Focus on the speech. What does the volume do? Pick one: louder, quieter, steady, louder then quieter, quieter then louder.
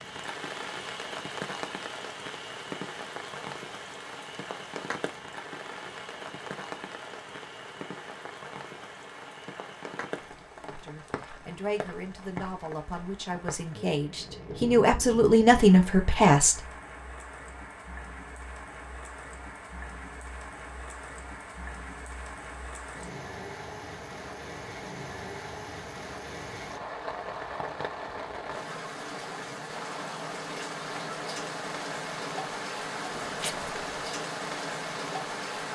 louder.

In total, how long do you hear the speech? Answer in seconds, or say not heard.
6 s.